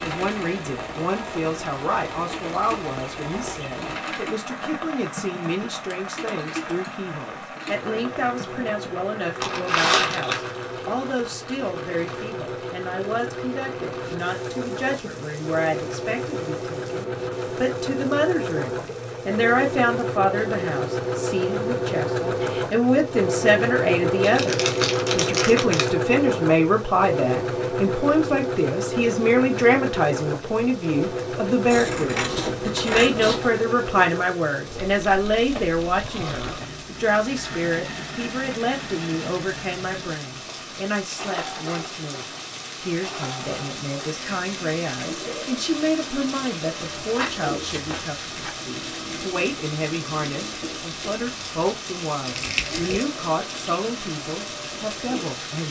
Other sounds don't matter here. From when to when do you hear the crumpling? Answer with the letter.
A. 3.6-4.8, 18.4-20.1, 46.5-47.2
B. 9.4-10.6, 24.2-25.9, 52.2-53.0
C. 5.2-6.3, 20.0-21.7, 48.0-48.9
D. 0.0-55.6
B.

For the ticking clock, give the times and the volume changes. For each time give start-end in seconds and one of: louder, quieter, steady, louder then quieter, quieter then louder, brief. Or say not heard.
not heard.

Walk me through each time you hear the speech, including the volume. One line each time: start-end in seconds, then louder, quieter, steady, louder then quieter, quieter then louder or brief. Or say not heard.
0.0-55.6 louder then quieter.